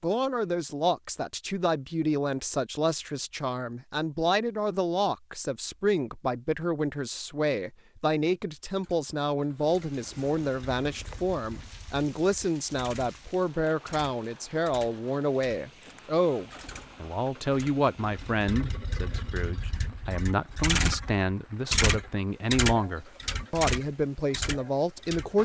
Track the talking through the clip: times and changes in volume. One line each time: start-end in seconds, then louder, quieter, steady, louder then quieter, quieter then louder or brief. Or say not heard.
0.0-25.3 steady.